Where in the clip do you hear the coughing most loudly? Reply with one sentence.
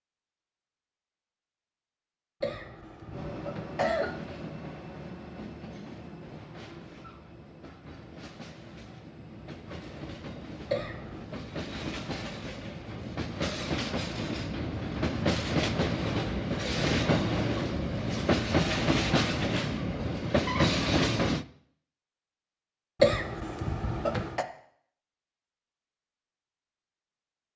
The loudest moment of the coughing is at 23 seconds.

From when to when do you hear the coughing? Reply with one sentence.
The coughing can be heard from 2.4 to 4.2 s, from 10.7 to 11.2 s and from 23.0 to 24.4 s.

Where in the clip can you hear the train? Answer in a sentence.
You can hear the train from 3.1 to 21.4 s.